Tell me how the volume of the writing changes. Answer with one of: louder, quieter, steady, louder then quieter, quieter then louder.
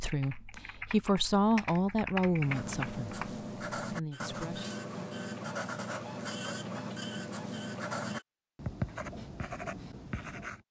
steady.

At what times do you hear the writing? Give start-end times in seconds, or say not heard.
2.4-10.6.